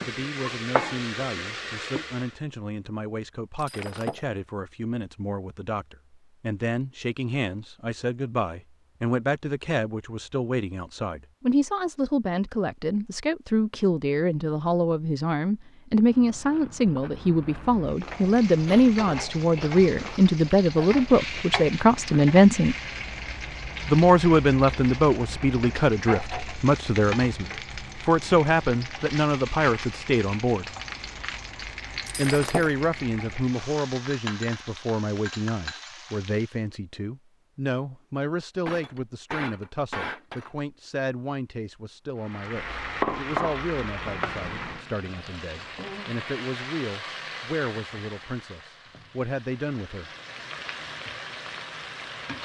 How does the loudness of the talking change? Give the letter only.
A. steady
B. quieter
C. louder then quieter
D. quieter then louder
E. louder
C.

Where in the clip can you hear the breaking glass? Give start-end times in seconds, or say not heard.
3.5-4.2, 32.0-32.7, 38.6-40.6.